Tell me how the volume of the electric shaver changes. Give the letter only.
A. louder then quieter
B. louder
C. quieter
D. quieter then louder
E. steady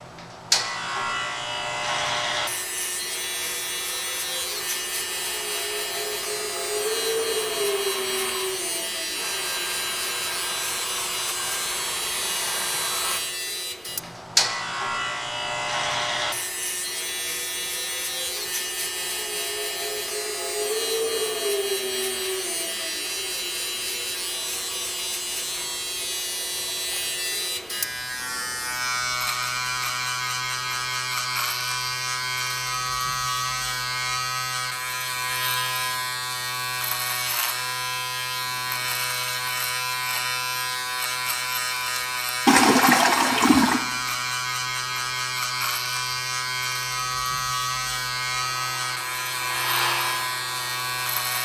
E.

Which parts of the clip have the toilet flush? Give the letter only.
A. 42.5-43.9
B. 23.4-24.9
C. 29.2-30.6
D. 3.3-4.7
A.